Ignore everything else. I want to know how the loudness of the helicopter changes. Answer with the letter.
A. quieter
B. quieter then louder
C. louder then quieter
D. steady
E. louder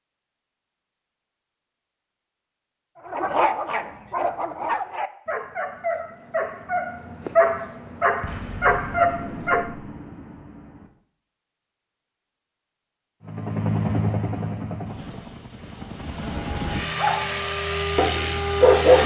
B.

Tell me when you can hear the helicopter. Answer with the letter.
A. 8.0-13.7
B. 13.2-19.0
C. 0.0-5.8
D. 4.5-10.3
B.